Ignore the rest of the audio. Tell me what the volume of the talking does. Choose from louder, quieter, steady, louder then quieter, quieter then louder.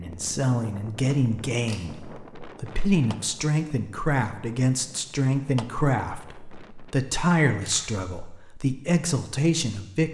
steady.